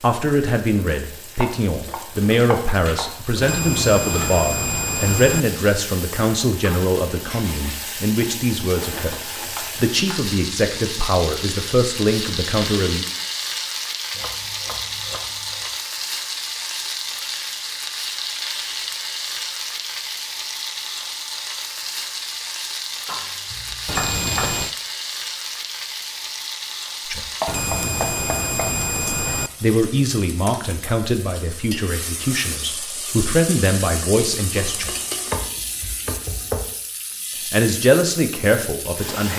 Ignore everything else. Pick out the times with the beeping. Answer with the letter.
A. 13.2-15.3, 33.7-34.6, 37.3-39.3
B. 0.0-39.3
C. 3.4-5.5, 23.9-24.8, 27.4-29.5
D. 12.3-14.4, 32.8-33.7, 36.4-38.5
C.